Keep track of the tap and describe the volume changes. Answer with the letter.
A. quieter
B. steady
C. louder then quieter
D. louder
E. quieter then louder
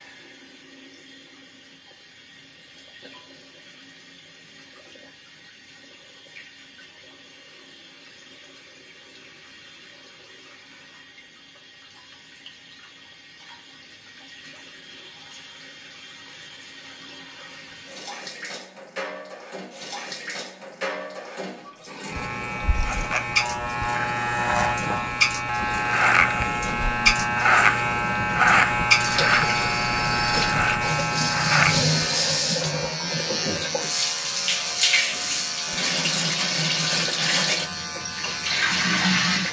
D.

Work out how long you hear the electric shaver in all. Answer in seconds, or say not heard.
17 s.